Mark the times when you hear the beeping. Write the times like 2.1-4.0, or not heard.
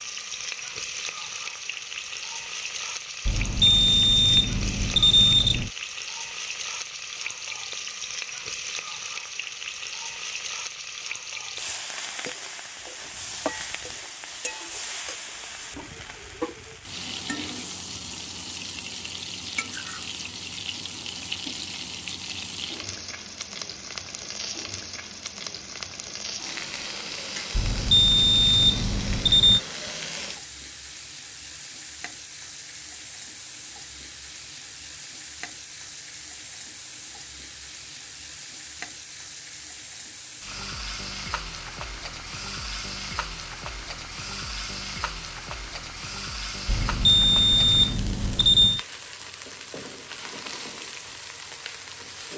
3.2-5.7, 27.5-29.6, 46.6-48.9.